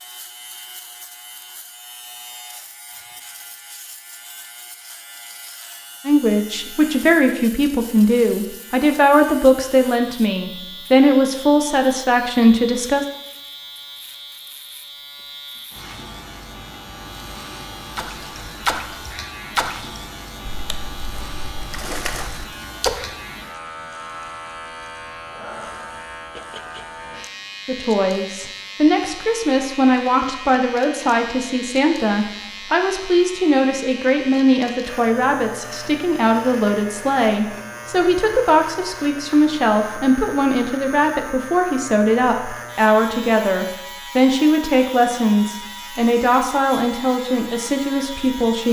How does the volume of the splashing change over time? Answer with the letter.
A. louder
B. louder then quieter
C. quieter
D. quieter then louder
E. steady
D.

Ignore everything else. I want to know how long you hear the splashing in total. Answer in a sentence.
You can hear the splashing for 5 seconds altogether.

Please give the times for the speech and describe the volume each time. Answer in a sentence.
The speech can be heard from 6.0 to 13.1 s, at a steady volume; and from 27.6 to 48.6 s, at a steady volume.